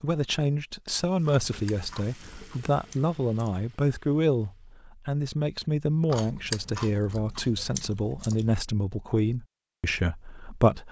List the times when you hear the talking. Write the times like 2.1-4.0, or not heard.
0.0-10.8.